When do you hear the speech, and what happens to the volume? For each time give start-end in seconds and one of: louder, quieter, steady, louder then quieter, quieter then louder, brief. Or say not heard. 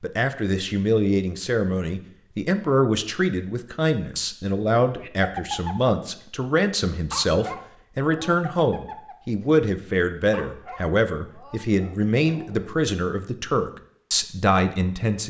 0.0-15.2 steady.